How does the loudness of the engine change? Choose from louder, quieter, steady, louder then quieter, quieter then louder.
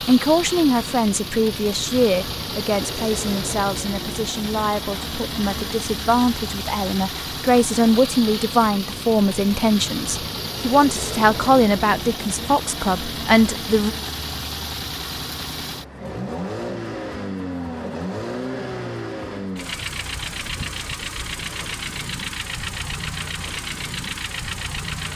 steady.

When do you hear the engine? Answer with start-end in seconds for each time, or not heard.
0.0-25.1.